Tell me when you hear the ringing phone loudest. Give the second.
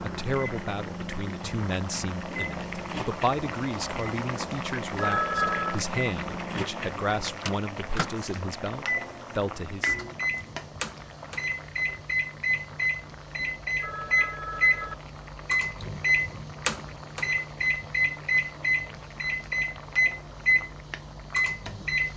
5 s.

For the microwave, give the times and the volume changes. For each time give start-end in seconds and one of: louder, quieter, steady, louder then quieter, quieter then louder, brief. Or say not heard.
0.0-22.1 louder.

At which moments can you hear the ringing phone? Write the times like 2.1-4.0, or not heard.
5.0-5.8, 13.8-14.9.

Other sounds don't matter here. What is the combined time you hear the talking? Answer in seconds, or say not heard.
10 s.